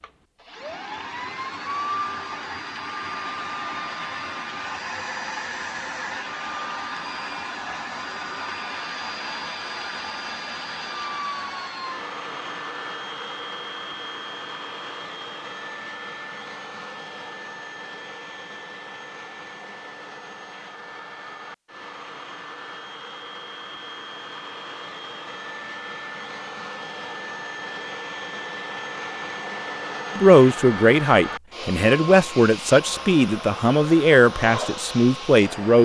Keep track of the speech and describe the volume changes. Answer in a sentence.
The volume of the speech stays about the same.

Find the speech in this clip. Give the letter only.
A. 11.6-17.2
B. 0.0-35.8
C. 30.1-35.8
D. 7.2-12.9
C.